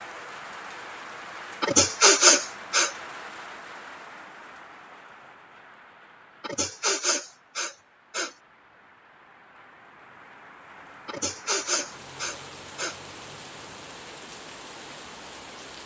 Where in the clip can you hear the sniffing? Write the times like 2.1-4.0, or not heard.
1.6-2.9, 6.4-8.3, 11.1-12.9.